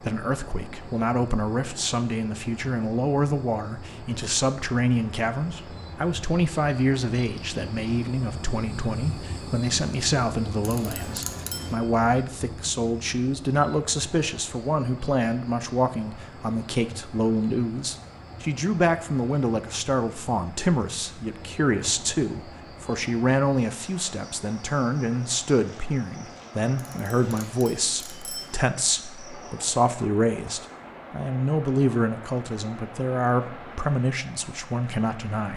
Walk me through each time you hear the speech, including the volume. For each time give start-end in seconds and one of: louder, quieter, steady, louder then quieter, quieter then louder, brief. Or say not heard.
0.0-35.5 steady.